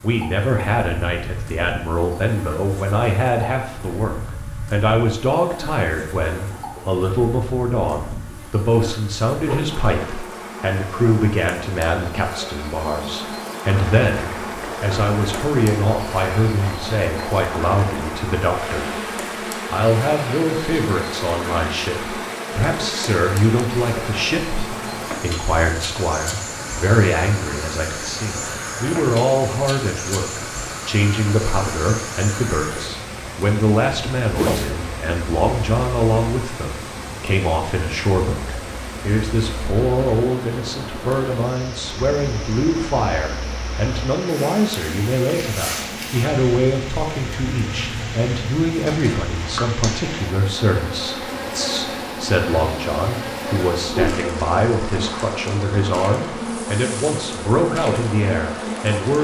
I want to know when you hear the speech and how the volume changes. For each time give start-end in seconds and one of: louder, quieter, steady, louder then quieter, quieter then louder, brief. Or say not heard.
0.0-18.9 steady
19.7-59.1 steady.